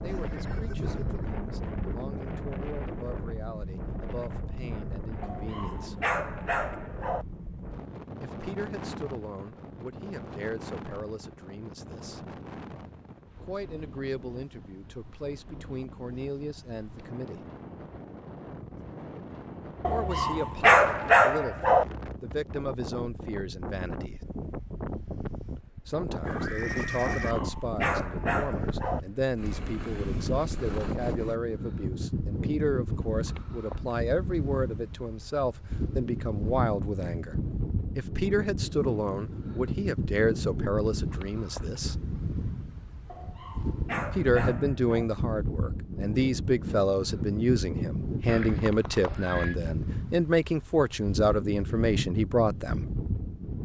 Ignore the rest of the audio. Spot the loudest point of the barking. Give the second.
21 s.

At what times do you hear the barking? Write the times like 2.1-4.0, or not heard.
5.2-7.2, 19.8-21.9, 27.2-29.0, 43.0-45.0.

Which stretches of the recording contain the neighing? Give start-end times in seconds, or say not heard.
0.1-1.2, 26.2-27.4, 48.2-49.5.